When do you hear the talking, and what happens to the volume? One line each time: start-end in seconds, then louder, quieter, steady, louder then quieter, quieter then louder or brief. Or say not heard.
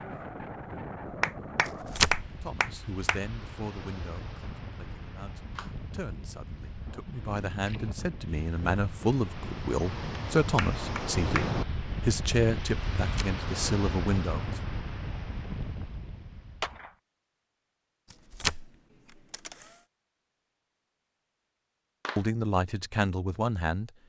2.4-14.6 louder
22.1-23.9 brief.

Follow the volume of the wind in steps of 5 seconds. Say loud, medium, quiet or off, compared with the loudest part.
medium, medium, loud, medium, off.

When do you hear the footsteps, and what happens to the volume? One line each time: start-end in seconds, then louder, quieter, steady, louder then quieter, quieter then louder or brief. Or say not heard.
not heard.